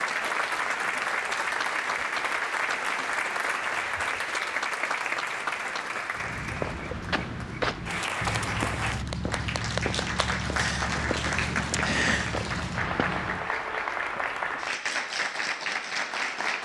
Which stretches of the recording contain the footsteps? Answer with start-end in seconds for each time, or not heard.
6.2-13.5.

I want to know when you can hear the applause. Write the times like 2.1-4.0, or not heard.
0.0-16.6.